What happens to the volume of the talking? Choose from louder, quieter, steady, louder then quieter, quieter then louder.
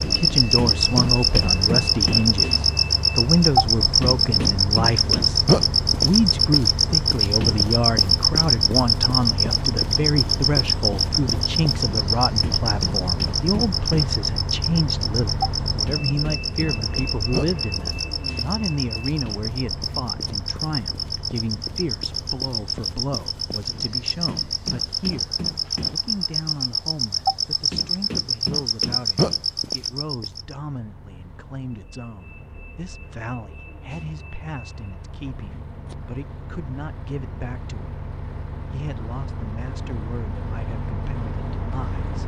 quieter.